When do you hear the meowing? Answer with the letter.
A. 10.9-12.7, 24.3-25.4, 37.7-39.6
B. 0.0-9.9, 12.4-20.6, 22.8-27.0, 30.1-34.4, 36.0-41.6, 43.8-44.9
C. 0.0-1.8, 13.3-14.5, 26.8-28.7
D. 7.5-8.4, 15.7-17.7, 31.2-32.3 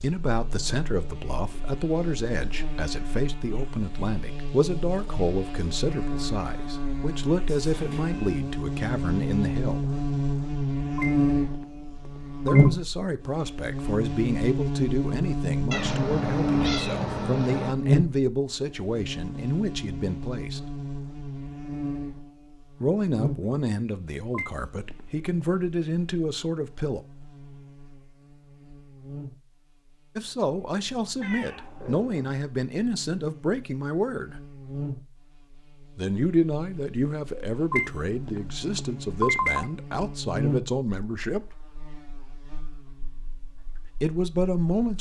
D.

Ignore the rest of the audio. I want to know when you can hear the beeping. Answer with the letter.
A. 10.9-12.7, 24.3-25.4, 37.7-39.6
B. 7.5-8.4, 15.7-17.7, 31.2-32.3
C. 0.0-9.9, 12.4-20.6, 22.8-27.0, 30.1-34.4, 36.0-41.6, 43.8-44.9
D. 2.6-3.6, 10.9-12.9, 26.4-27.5
A.